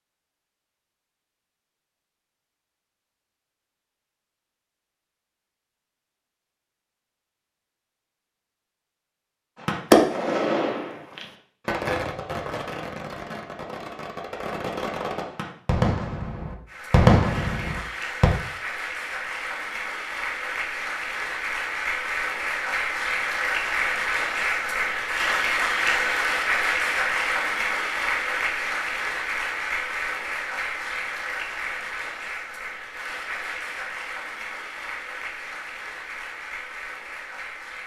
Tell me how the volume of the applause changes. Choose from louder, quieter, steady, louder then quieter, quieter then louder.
louder then quieter.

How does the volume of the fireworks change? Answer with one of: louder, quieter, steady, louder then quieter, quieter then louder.
quieter then louder.